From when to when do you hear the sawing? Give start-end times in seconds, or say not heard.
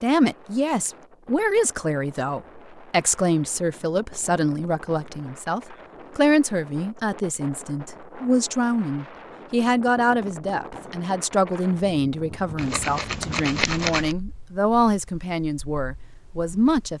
12.6-14.2.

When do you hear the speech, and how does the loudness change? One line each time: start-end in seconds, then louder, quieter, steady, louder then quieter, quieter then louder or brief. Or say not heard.
0.0-16.9 steady.